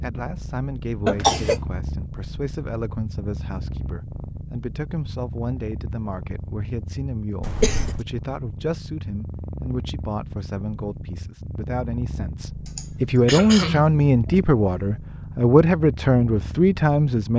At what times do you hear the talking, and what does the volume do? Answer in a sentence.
The talking can be heard from 0.0 to 17.3 s, getting louder.